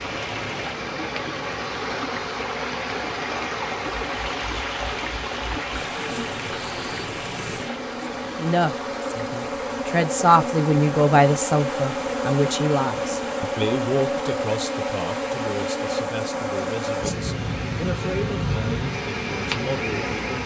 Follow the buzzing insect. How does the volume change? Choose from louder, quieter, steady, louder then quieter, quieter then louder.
louder.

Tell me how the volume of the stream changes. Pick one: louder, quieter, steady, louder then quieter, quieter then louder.
quieter.